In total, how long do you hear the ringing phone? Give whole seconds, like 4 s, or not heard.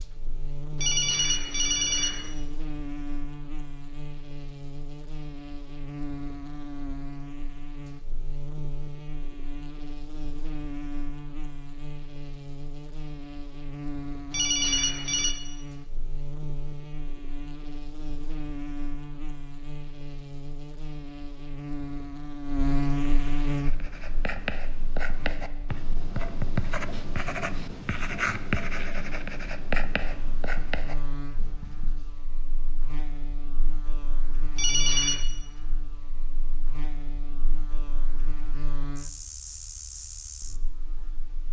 3 s.